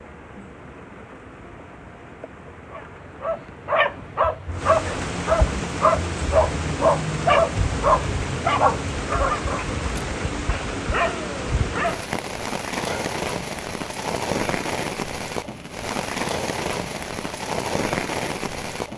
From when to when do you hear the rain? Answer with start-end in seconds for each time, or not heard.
0.0-18.9.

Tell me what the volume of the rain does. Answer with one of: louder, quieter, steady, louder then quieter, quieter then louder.
louder.